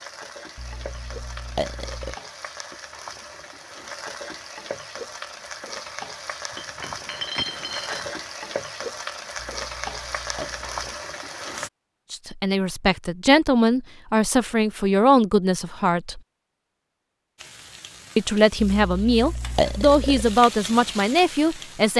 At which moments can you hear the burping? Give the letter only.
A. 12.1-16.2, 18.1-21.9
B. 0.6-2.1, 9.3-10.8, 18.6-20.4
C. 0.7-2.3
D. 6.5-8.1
B.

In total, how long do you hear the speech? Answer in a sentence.
The speech can be heard for 8 seconds in total.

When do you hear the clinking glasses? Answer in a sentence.
You can hear the clinking glasses from 6.5 to 8.1 s.